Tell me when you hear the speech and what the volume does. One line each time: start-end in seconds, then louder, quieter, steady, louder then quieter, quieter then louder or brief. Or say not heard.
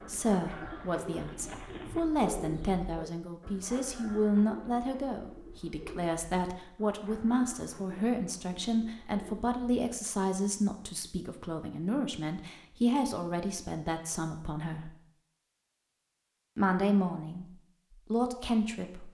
0.0-14.9 steady
16.6-19.0 brief.